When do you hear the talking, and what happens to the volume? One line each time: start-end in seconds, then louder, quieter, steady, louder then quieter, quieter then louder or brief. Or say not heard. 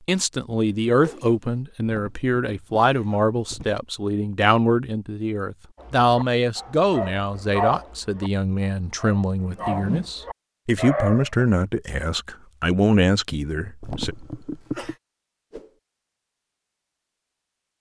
0.1-14.2 steady.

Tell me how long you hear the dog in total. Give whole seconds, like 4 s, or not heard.
6 s.